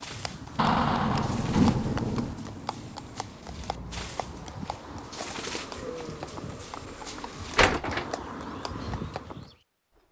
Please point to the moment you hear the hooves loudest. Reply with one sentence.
The loudest moment of the hooves is at 2 seconds.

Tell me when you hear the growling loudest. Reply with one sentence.
The volume of the growling peaks at 2 seconds.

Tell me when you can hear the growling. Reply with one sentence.
The growling can be heard from 0.8 to 2.3 s and from 5.5 to 6.7 s.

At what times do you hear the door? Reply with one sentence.
The door can be heard from 0.6 to 2.4 s and from 7.5 to 8.1 s.